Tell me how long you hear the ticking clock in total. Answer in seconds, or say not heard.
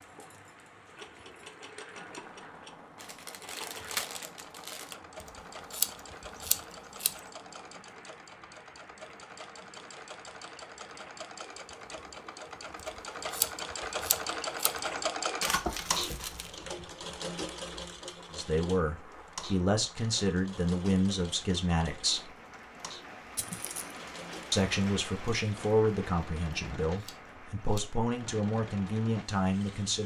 not heard.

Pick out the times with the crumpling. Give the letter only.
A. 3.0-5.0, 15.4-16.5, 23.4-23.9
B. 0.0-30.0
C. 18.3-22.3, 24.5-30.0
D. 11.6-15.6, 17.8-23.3
A.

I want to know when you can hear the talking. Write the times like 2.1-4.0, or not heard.
18.3-22.3, 24.5-30.0.